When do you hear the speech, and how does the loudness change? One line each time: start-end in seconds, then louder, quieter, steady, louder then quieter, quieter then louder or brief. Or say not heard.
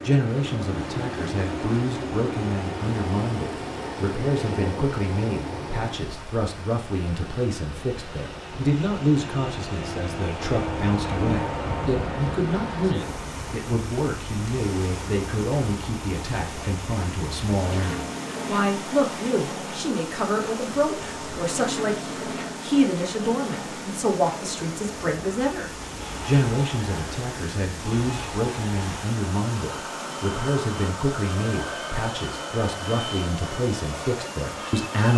0.0-35.1 steady.